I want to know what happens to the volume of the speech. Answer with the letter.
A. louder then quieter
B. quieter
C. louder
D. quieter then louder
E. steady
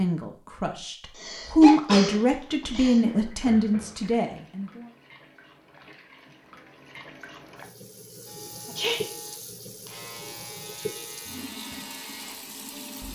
A.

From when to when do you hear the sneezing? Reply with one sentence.
You can hear the sneezing from 1.1 to 3.0 s and from 8.7 to 9.1 s.